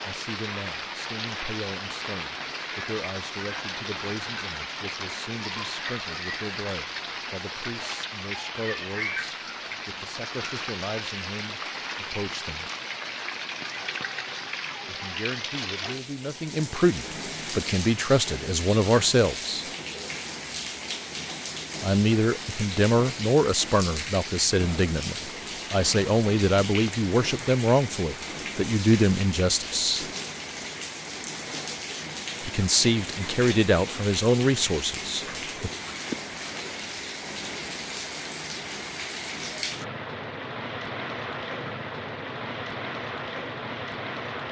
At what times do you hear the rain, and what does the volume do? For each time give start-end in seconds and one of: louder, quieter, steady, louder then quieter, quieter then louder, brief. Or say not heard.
0.0-44.4 steady.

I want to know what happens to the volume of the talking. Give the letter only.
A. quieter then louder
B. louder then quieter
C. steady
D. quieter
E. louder
E.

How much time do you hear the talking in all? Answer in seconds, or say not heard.
29 s.